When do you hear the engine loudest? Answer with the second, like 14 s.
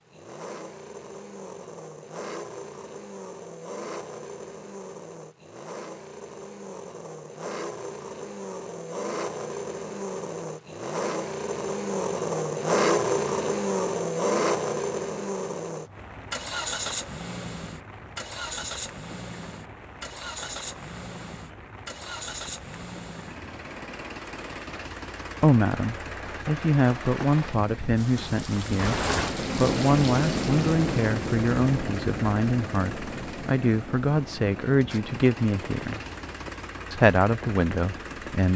13 s.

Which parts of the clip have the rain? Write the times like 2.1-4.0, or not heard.
15.9-38.5.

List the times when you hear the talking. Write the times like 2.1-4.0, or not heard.
25.4-36.0, 36.9-38.5.